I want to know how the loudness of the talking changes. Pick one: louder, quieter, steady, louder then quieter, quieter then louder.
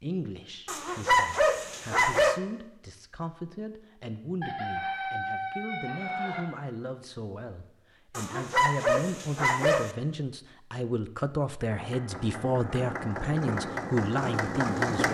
louder.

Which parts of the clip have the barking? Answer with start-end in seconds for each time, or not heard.
0.7-2.4, 8.2-9.9.